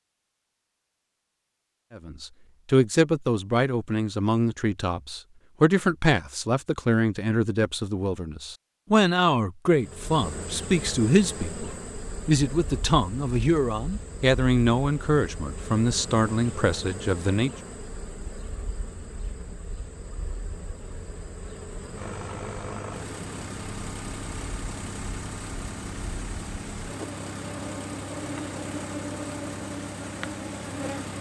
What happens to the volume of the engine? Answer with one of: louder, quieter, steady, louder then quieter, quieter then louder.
steady.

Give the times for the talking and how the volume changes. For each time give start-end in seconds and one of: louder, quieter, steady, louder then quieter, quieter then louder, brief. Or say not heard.
1.9-17.5 steady.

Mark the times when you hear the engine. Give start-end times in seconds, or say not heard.
21.9-31.1.